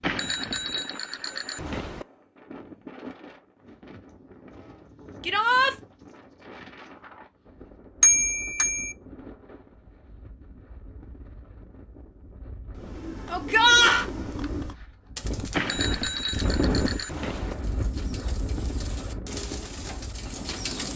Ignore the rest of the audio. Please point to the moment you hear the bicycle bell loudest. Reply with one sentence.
The volume of the bicycle bell peaks at 8 seconds.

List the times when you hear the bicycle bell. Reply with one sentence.
You can hear the bicycle bell from 0.0 to 2.0 s, from 8.0 to 8.9 s and from 15.5 to 17.6 s.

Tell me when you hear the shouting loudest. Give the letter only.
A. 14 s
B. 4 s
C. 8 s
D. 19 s
A.